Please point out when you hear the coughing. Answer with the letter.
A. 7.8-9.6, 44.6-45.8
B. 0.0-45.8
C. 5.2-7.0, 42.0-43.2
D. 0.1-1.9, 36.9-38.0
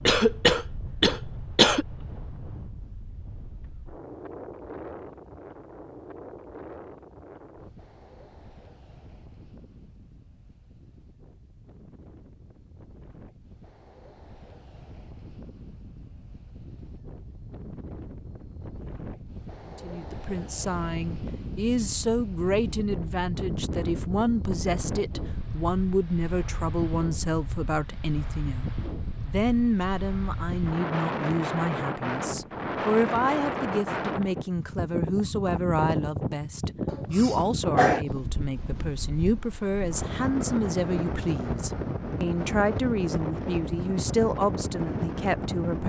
D.